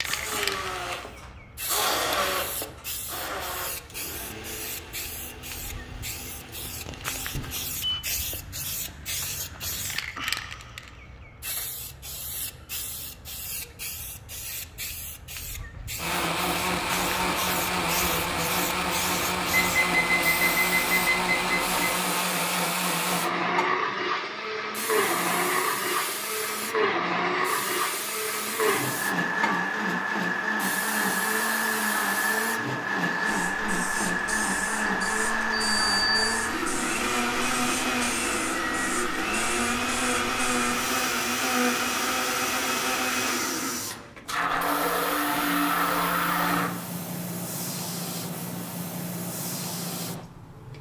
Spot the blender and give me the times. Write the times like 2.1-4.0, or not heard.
0.0-8.0, 15.9-46.7.